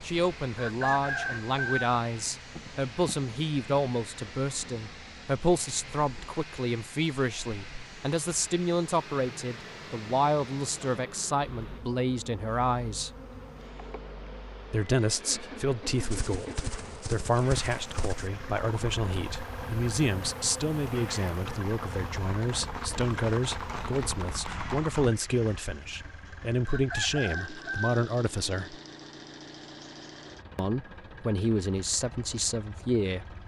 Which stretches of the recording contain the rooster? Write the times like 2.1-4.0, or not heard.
0.6-1.9, 26.6-27.9.